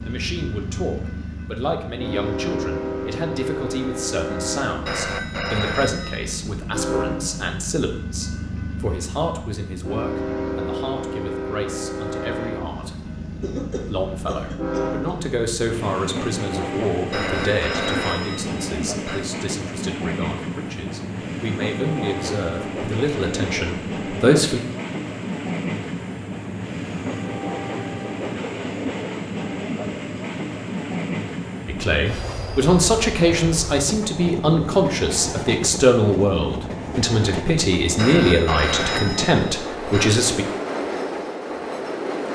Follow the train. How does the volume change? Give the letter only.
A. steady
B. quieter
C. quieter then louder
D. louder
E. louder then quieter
A.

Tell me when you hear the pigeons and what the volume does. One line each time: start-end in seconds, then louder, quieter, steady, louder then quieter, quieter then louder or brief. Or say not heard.
not heard.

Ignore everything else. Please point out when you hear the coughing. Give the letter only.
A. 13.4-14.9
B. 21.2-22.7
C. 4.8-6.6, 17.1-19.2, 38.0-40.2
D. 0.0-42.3
A.